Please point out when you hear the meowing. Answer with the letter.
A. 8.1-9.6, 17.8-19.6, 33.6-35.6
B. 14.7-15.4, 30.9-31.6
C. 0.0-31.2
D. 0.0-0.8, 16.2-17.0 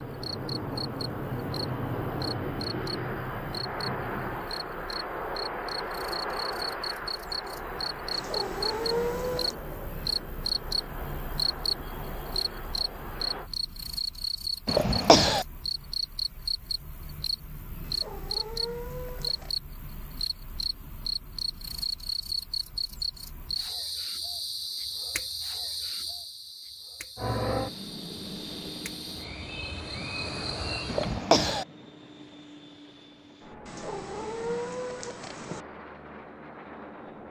A.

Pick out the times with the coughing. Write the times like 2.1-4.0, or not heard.
14.7-15.4, 30.9-31.6.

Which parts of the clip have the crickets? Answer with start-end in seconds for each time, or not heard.
0.0-31.2.